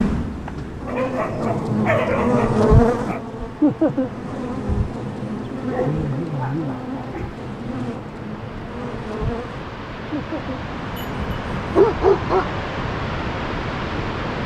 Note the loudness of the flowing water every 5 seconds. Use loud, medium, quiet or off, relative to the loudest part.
quiet, medium, loud.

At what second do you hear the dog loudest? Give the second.
12 s.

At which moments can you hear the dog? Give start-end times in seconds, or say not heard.
0.8-3.2, 5.7-7.3, 10.9-12.5.